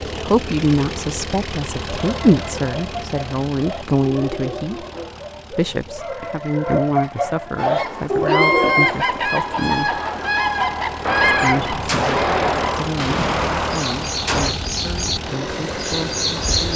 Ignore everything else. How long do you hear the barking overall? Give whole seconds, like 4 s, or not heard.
7 s.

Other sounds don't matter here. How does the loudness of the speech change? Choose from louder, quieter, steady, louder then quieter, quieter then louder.
quieter.